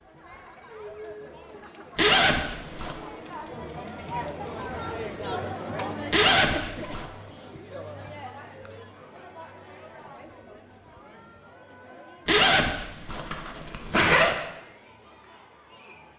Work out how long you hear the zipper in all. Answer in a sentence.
The zipper can be heard for 4 seconds in total.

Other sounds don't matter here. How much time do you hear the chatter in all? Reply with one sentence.
You can hear the chatter for 16 seconds altogether.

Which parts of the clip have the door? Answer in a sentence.
You can't hear the door here.